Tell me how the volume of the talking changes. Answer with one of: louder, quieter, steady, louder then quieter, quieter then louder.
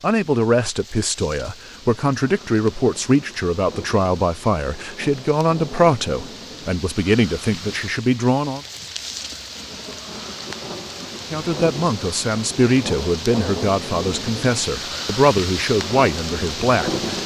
steady.